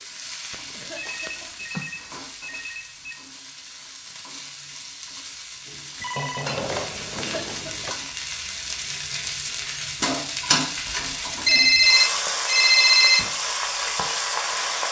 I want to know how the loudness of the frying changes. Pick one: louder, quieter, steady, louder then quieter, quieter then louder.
louder.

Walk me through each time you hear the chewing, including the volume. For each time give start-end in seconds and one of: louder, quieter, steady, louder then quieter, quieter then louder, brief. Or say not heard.
not heard.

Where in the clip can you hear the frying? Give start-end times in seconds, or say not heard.
0.0-14.8.